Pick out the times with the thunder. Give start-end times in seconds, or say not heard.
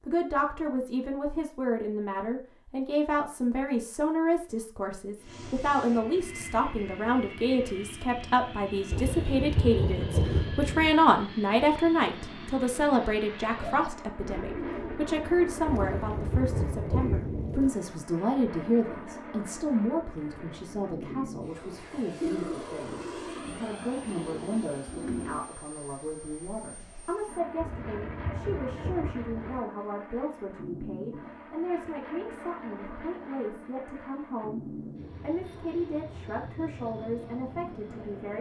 8.9-10.9, 15.7-17.7, 27.6-29.6.